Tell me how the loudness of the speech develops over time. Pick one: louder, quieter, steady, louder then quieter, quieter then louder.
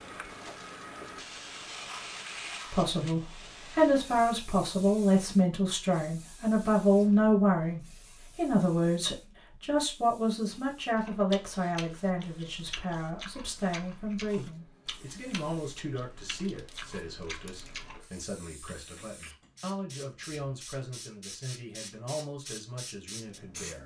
quieter.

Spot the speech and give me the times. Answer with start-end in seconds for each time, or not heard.
2.7-23.8.